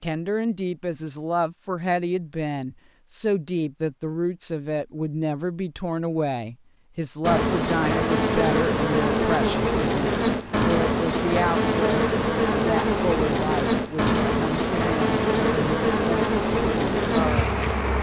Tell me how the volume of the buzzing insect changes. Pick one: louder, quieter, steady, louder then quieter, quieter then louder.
steady.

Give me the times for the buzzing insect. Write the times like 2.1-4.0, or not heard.
7.2-17.9.